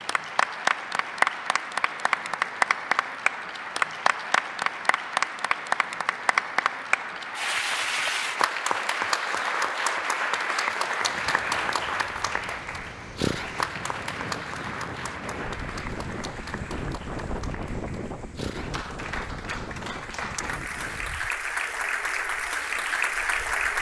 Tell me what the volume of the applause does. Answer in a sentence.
The loudness of the applause goes down, then up.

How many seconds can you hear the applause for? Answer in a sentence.
The applause can be heard for 24 seconds in total.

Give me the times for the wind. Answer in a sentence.
The wind can be heard from 11.1 to 23.7 s.